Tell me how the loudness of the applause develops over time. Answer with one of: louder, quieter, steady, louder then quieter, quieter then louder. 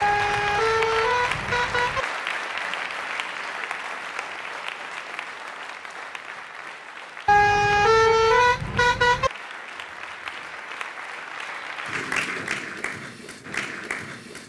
quieter then louder.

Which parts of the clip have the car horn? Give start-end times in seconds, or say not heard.
0.0-2.0, 7.2-9.3.